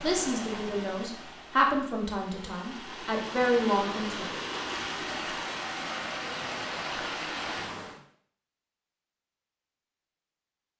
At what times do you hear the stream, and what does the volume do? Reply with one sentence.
The stream can be heard from 0.0 to 8.0 s, getting louder.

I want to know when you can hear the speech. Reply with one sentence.
You can hear the speech from 0.0 to 4.4 s.